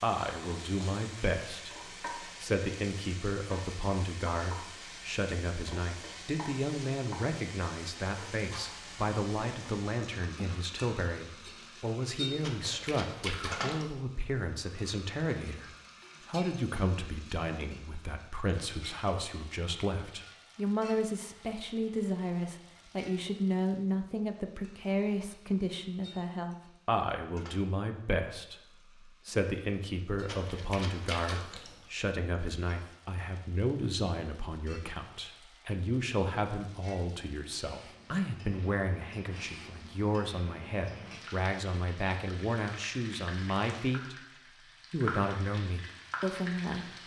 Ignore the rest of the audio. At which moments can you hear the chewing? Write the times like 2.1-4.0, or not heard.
12.4-13.9, 30.2-31.9.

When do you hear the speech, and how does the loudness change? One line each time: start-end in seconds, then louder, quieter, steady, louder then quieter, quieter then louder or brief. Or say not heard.
0.0-44.1 steady
44.9-47.0 brief.